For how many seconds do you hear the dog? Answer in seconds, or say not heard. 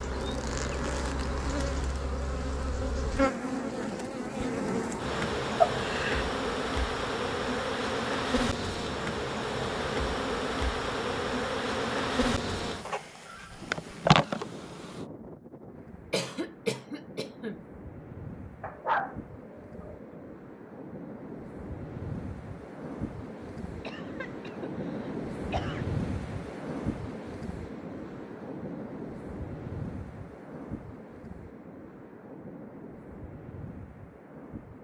2 s.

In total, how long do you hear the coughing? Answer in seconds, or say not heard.
4 s.